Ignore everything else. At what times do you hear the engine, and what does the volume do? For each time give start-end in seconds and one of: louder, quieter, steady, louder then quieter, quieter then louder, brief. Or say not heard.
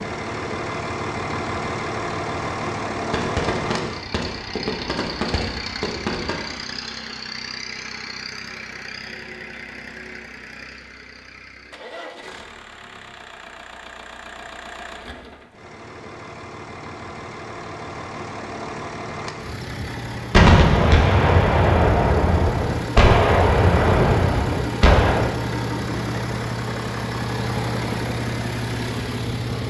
0.0-29.6 quieter then louder.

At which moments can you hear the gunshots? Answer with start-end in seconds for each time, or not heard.
3.1-6.5, 20.3-25.3.